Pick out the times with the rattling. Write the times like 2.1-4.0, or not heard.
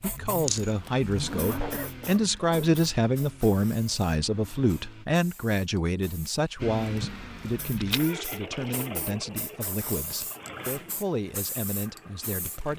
0.3-0.8, 7.8-8.8.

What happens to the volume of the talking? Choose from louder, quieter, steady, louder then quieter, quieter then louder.
quieter.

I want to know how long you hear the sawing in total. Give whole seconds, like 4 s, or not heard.
not heard.